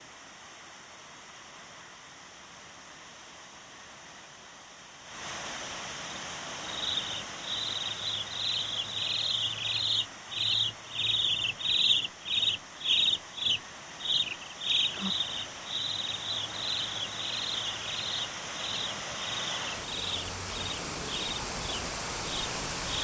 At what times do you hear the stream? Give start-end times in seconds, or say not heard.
0.0-22.9.